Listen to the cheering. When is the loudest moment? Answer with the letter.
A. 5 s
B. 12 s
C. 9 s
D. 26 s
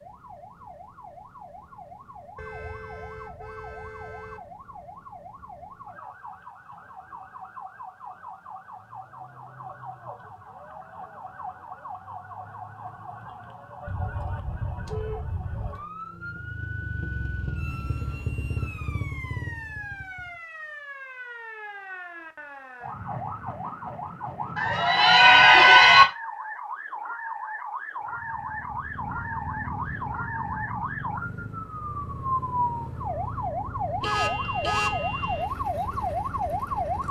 D.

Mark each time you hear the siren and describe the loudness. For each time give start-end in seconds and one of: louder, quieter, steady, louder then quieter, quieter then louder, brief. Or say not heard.
0.0-37.0 louder.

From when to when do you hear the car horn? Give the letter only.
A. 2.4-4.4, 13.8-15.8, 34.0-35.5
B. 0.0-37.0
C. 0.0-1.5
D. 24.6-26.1
A.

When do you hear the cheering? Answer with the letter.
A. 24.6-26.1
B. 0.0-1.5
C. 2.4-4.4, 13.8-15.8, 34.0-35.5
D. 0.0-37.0
A.